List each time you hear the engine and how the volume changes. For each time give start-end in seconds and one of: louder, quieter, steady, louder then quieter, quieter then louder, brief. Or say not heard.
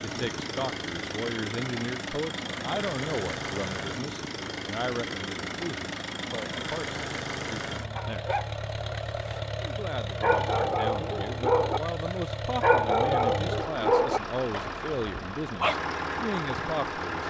0.0-17.2 steady.